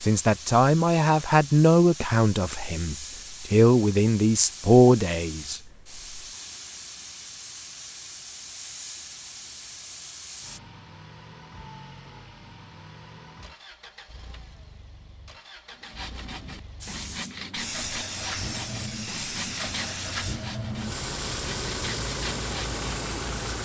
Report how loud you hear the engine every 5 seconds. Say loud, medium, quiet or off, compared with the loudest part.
off, off, quiet, medium, loud.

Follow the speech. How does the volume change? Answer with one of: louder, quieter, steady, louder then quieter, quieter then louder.
quieter then louder.